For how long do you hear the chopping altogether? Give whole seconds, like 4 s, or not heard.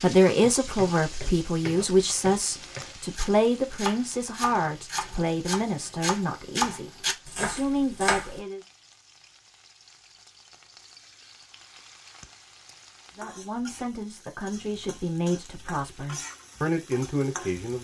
8 s.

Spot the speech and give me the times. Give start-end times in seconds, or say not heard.
0.0-8.6, 13.2-17.7.